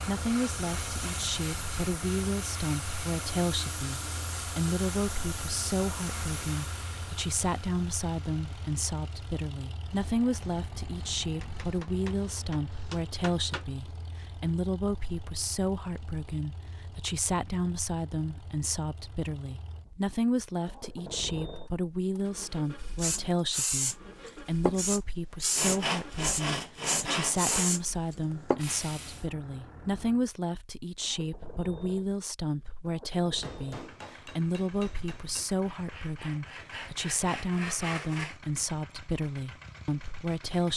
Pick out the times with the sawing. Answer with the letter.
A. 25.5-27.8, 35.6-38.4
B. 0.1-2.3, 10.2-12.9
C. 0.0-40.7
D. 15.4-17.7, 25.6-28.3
A.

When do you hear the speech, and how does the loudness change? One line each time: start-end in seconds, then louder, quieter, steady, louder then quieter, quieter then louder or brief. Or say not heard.
0.0-40.7 steady.